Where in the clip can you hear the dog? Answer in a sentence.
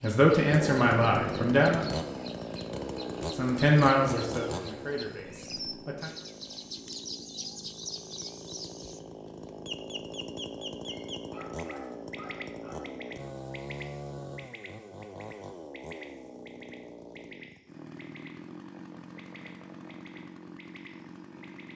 You can hear the dog from 10.8 to 12.8 s.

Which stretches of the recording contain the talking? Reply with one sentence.
You can hear the talking from 0.0 to 1.9 s and from 3.4 to 6.1 s.